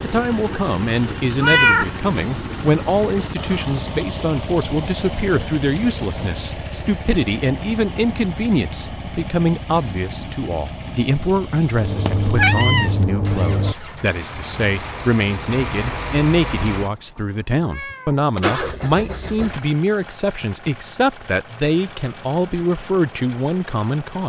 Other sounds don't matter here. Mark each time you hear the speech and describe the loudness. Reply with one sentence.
You can hear the speech from 0.0 to 24.2 s, at a steady volume.